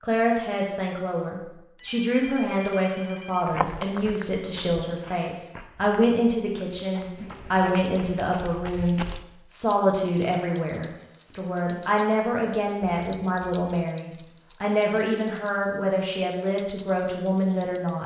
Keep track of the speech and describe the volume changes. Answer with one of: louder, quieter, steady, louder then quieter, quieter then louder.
steady.